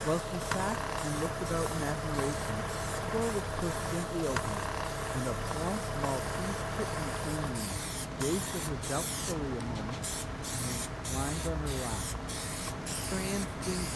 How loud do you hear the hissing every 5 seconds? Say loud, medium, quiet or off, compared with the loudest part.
medium, loud, loud.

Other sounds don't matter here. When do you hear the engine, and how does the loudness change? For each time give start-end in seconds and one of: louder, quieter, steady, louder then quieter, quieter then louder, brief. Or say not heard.
0.0-13.9 quieter.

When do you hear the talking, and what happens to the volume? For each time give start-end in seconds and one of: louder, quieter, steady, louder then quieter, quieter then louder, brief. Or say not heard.
0.0-12.1 steady
13.1-13.9 brief.